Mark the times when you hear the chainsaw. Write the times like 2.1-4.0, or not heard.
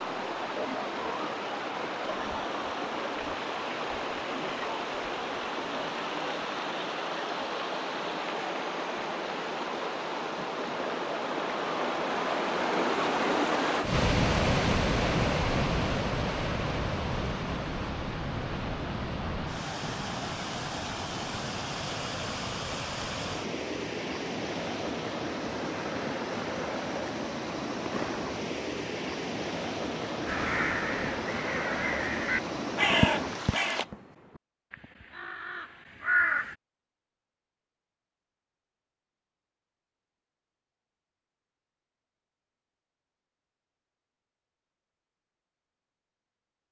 not heard.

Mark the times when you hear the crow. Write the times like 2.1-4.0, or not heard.
30.2-36.5.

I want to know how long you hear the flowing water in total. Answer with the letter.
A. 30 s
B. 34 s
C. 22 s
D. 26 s
B.